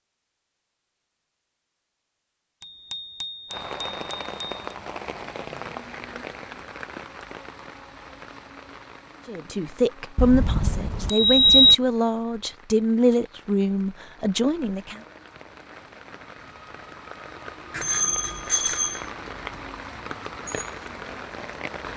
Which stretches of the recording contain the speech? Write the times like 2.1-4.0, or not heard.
9.2-15.0.